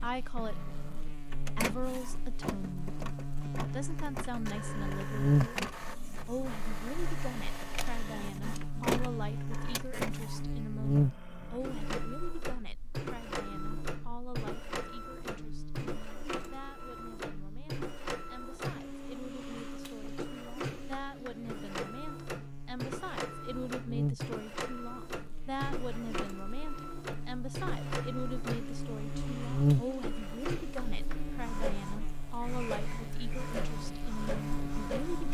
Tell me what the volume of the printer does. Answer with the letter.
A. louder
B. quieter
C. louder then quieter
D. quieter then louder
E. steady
E.